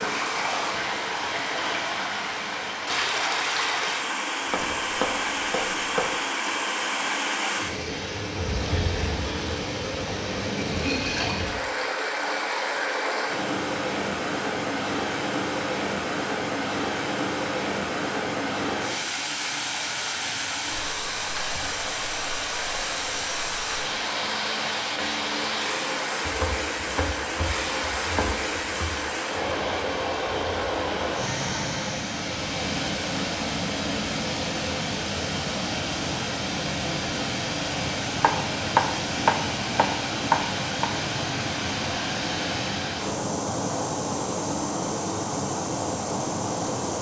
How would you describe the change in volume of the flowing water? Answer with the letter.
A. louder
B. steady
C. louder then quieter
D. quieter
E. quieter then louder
B.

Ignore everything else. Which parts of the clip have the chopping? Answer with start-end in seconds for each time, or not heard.
4.5-6.1, 26.2-28.9, 38.2-40.9.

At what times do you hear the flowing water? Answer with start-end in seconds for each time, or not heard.
0.0-46.9.